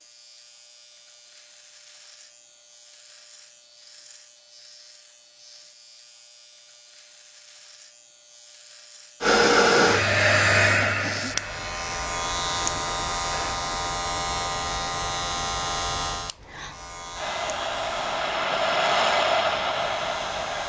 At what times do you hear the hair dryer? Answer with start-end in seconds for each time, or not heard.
9.2-13.6, 17.1-20.6.